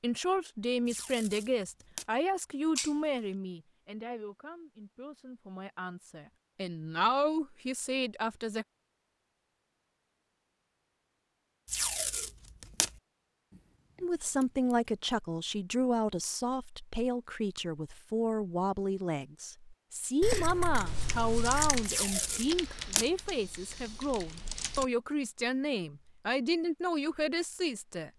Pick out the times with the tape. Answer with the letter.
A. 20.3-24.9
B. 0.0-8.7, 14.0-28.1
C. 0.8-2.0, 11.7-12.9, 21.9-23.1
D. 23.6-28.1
C.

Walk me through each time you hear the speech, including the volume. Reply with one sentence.
The speech can be heard from 0.0 to 8.7 s, getting quieter then louder; and from 14.0 to 28.1 s, at a steady volume.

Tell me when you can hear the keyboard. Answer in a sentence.
The keyboard can be heard from 20.3 to 24.9 s.